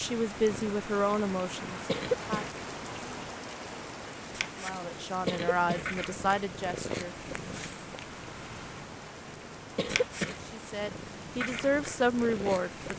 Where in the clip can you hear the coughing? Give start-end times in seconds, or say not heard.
1.9-2.5, 5.2-6.0, 9.8-10.4.